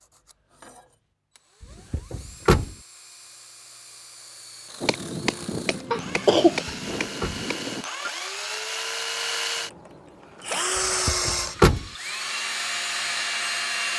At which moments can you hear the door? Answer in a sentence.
The door can be heard from 1.9 to 2.8 s, from 6.7 to 7.5 s and from 11.1 to 11.8 s.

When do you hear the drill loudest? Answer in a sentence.
The volume of the drill peaks at 11 seconds.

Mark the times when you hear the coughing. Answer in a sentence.
The coughing can be heard from 5.9 to 6.7 s.